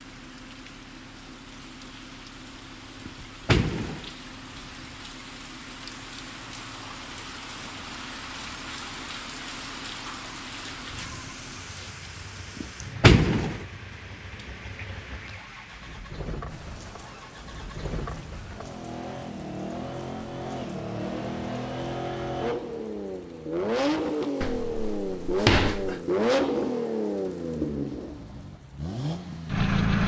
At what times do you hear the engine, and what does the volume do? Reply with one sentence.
You can hear the engine from 0.0 to 30.0 s, getting louder.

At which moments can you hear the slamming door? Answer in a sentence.
The slamming door can be heard from 3.0 to 4.0 s, from 12.6 to 13.6 s and from 24.4 to 26.0 s.